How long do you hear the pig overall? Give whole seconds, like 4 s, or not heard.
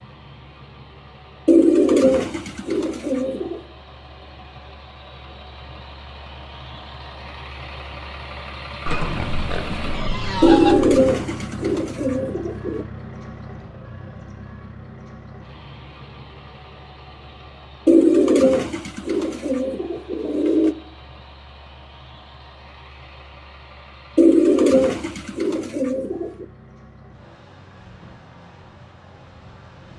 2 s.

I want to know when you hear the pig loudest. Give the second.
11 s.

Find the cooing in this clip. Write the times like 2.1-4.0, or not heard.
1.4-3.6, 10.4-12.8, 17.9-20.8, 24.1-26.4.